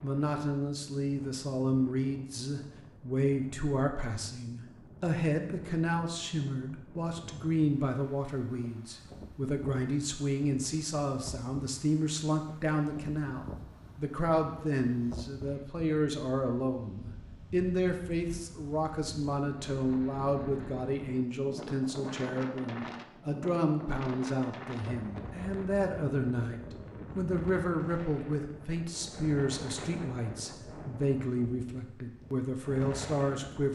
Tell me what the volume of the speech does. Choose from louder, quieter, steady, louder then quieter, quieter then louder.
steady.